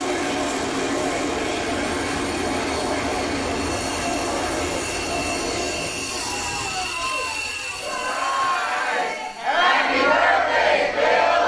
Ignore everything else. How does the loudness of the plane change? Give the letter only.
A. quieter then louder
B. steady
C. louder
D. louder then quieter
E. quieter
E.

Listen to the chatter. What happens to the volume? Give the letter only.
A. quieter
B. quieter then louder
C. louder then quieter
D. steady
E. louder
E.